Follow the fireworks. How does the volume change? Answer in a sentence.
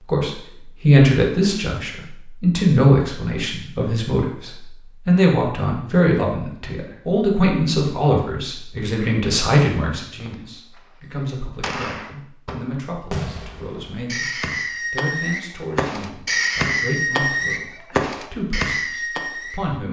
The volume of the fireworks goes up.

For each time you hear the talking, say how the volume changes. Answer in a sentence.
The talking can be heard from 0.1 to 19.8 s, getting quieter.